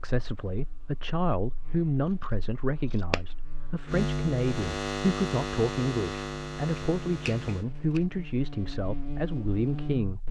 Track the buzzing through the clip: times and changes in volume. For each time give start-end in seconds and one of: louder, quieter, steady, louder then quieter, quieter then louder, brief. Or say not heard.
0.1-10.2 louder then quieter.